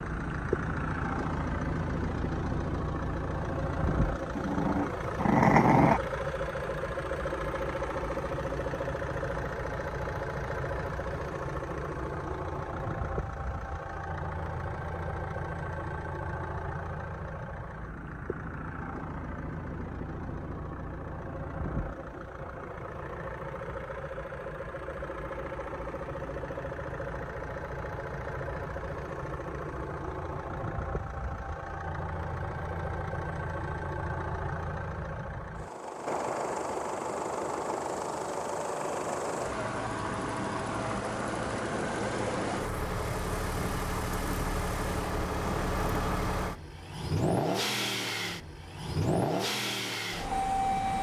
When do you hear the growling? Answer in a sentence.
You can hear the growling from 4.3 to 6.0 s.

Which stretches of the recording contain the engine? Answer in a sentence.
The engine can be heard from 0.0 to 50.9 s.